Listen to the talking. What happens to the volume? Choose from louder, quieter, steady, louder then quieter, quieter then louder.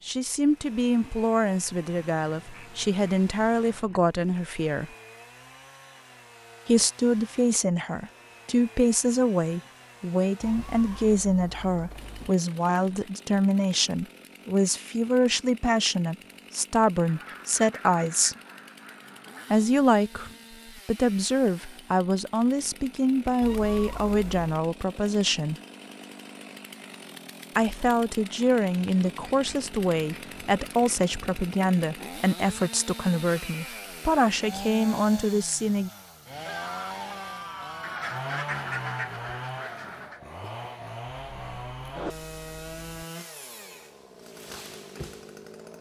steady.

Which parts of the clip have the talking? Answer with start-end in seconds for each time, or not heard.
0.1-4.9, 6.7-18.4, 19.5-25.6, 27.6-35.9.